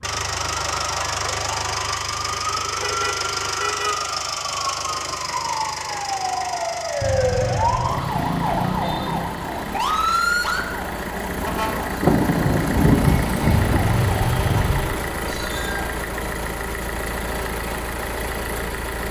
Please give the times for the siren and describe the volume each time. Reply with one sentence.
You can hear the siren from 0.2 to 15.9 s, getting louder then quieter.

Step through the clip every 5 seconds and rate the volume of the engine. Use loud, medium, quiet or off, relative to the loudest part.
loud, medium, loud, loud.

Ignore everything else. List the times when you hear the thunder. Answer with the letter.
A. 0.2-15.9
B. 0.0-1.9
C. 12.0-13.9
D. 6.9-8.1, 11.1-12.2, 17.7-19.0
C.